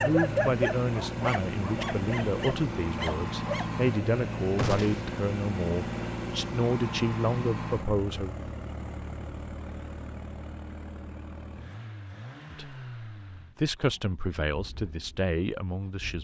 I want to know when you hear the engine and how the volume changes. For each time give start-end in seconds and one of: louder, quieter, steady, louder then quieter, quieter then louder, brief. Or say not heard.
0.0-16.1 quieter.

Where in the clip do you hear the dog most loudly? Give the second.
1 s.